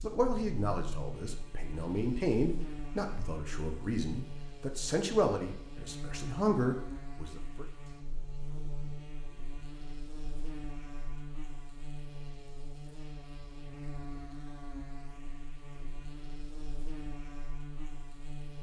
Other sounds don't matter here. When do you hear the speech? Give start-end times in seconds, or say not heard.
0.0-7.7.